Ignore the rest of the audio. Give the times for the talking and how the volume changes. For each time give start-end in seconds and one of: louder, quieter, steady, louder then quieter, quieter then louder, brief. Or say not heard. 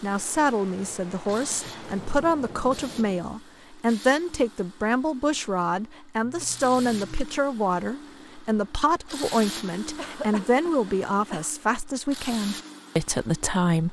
0.0-13.8 steady.